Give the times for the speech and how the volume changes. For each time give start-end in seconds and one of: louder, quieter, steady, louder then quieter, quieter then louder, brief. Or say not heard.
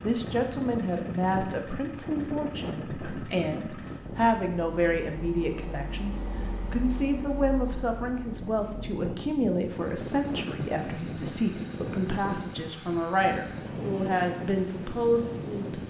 0.0-15.8 steady.